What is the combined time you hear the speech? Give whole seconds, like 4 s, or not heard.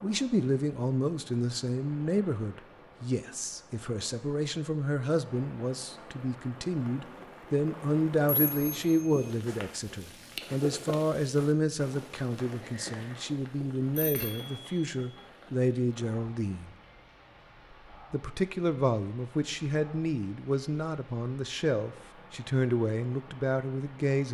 23 s.